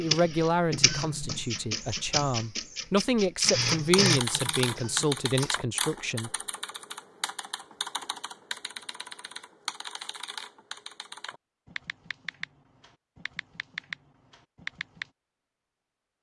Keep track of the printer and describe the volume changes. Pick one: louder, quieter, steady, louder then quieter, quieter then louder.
louder then quieter.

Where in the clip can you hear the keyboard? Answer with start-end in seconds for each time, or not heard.
3.7-15.1.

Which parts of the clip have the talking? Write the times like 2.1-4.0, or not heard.
0.0-6.3.